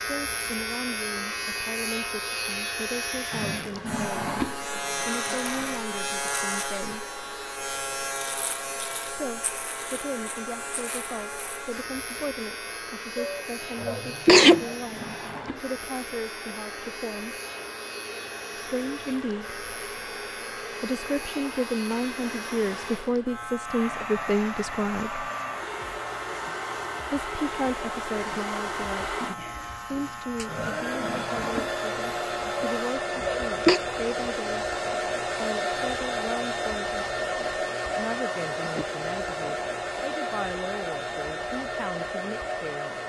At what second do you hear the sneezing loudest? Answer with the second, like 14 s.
14 s.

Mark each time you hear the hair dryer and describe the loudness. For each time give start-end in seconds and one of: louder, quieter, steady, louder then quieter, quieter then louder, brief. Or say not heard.
0.0-43.0 louder.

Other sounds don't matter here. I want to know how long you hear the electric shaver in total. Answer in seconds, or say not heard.
33 s.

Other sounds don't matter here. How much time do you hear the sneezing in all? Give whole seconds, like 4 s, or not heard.
3 s.